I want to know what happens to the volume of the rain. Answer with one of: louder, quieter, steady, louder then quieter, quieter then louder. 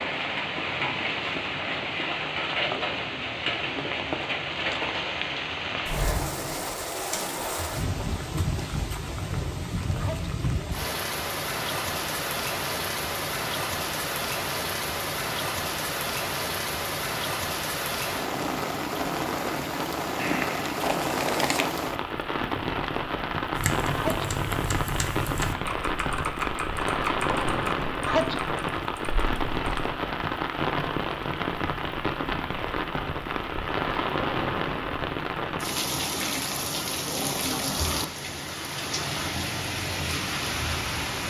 steady.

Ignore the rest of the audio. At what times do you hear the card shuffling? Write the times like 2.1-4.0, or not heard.
20.1-21.9.